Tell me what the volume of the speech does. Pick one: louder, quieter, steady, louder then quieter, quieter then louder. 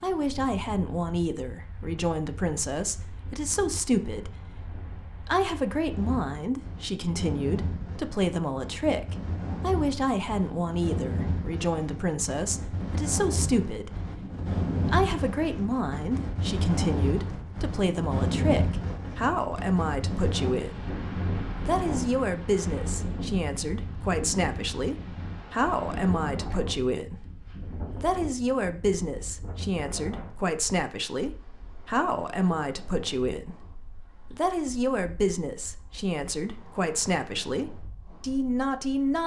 steady.